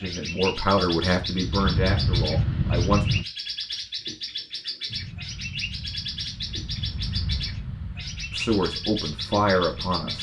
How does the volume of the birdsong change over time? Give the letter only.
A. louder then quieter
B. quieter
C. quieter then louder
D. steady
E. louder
D.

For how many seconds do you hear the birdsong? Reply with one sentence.
The birdsong can be heard for 10 seconds in total.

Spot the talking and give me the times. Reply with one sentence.
The talking can be heard from 0.0 to 3.0 s and from 8.3 to 10.1 s.